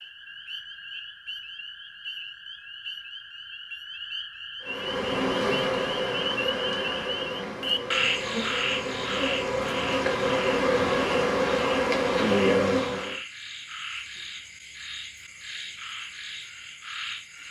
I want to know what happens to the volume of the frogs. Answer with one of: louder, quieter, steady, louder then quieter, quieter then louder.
louder then quieter.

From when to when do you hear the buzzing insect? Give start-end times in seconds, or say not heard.
4.7-13.2.